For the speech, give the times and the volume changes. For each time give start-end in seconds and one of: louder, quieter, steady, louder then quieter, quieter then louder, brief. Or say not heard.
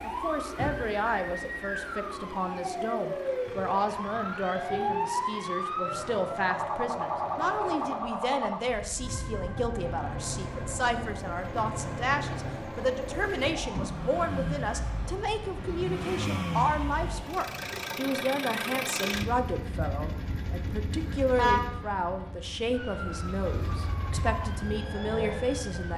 0.0-25.9 steady.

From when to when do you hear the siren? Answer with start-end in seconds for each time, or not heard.
0.0-17.8, 22.7-25.9.